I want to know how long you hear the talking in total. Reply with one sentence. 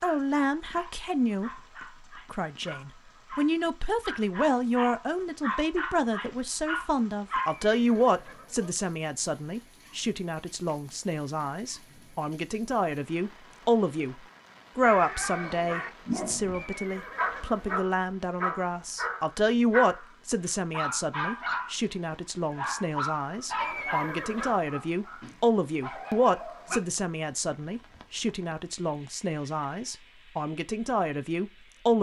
You can hear the talking for 31 seconds altogether.